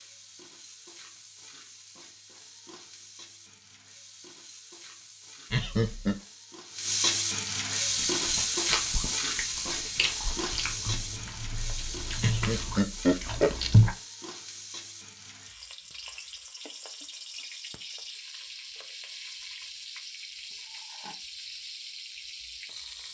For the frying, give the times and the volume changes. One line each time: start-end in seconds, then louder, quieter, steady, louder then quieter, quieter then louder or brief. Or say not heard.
0.0-23.0 louder then quieter.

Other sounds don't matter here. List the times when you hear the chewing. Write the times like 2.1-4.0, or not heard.
8.0-13.9.